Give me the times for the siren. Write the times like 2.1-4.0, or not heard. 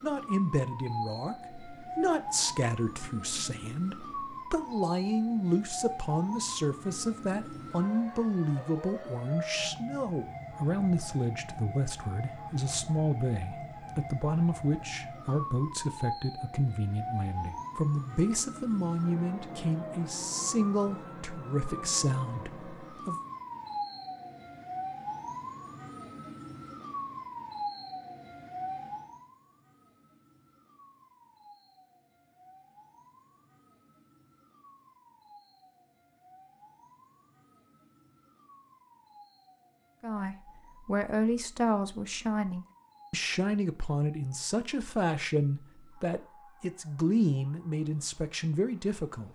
0.0-49.3.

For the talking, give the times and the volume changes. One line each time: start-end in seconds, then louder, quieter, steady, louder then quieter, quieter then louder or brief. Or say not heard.
0.0-23.2 steady
40.0-49.3 steady.